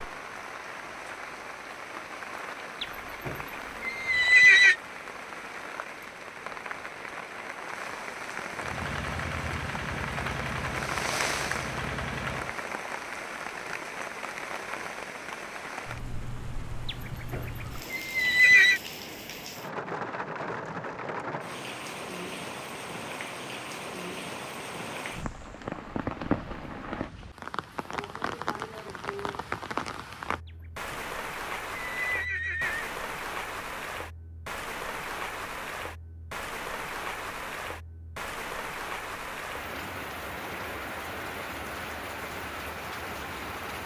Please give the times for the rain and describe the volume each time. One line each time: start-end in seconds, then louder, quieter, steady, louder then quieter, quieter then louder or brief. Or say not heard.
0.0-43.8 steady.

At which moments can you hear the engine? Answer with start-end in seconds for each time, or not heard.
8.6-12.6.